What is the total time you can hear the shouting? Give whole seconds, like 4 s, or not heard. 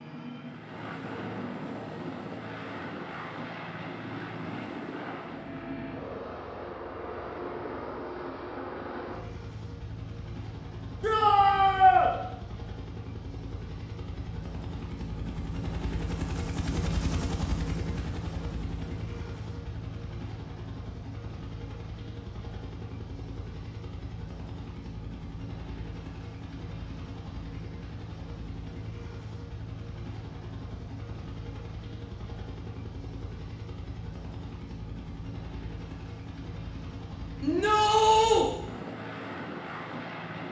2 s.